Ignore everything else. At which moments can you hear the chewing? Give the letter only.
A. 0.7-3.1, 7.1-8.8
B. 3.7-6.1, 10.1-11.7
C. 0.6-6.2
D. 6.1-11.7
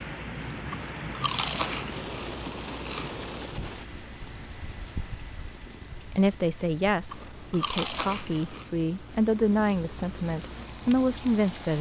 A.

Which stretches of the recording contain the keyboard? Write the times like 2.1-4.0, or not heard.
not heard.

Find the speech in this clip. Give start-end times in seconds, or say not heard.
6.1-11.7.